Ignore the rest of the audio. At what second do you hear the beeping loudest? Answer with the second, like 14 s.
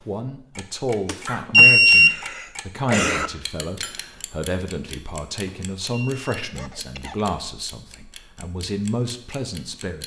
2 s.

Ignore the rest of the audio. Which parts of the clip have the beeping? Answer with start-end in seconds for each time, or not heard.
1.1-2.1, 5.5-6.5.